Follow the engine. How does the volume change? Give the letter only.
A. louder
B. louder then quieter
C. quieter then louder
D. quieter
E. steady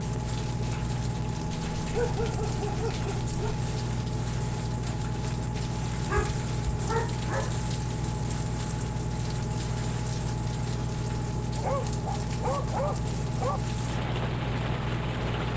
E.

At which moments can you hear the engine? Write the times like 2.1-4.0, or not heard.
0.0-15.5.